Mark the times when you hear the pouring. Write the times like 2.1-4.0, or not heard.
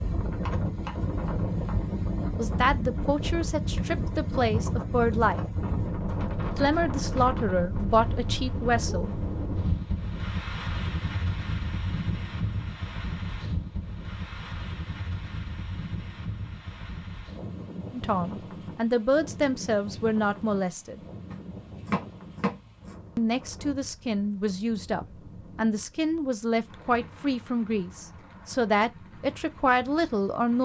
not heard.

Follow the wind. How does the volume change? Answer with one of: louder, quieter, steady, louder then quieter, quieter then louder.
quieter.